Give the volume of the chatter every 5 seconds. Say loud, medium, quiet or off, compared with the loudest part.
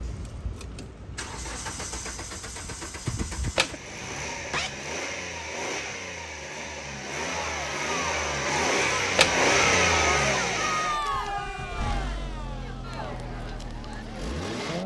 off, loud, loud.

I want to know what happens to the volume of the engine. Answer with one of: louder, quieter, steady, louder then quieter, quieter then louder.
louder then quieter.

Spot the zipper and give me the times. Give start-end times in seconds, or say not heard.
3.5-4.8, 9.2-9.9.